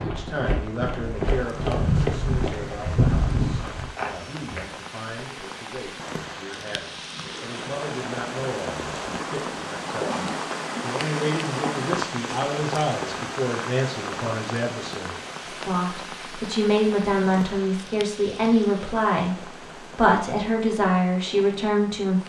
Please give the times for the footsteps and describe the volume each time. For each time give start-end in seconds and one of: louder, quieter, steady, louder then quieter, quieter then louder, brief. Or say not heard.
0.0-4.7 louder then quieter.